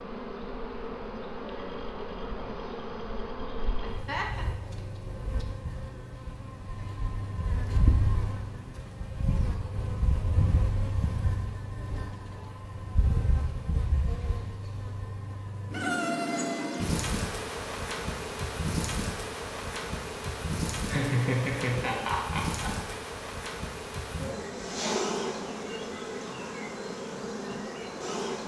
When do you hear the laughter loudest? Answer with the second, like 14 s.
21 s.